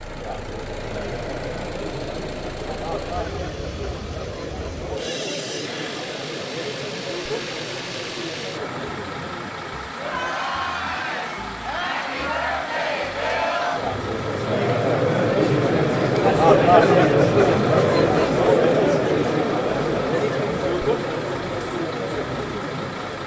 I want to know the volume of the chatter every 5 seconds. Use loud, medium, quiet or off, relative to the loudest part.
quiet, quiet, medium, loud, medium.